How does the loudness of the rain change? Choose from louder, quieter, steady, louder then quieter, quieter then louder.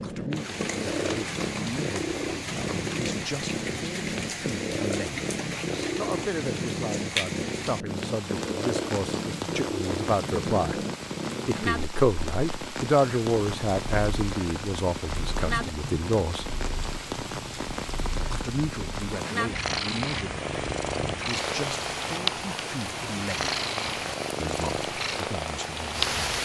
steady.